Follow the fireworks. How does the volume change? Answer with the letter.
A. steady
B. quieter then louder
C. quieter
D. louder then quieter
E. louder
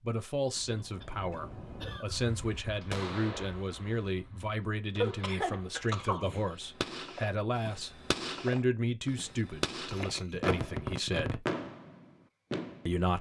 B.